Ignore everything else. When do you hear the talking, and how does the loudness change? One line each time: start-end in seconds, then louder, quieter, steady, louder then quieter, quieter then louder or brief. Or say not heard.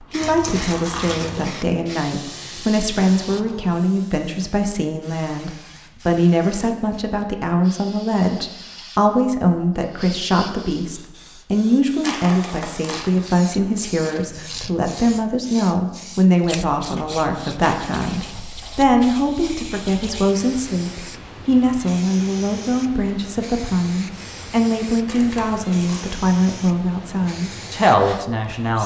0.0-28.8 steady.